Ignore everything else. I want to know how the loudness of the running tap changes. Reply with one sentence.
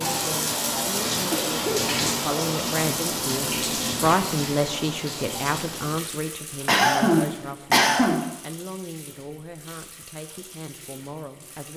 The loudness of the running tap goes down.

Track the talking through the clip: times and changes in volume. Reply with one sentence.
You can hear the talking from 0.1 to 11.7 s, getting louder then quieter.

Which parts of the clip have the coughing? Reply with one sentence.
The coughing can be heard from 1.3 to 2.1 s and from 6.7 to 8.2 s.